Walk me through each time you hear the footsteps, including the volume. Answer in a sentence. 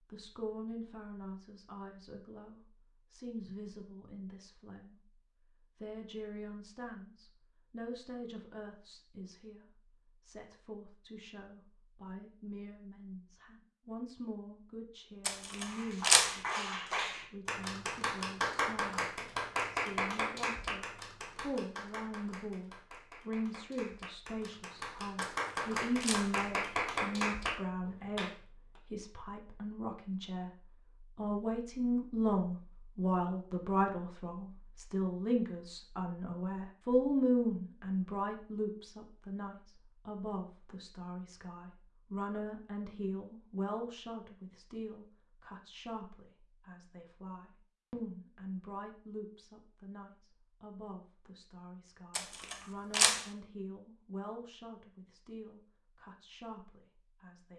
The footsteps can't be heard in this clip.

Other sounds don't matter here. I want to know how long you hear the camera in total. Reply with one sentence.
You can hear the camera for 3 seconds altogether.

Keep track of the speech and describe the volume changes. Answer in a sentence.
The loudness of the speech goes up, then down.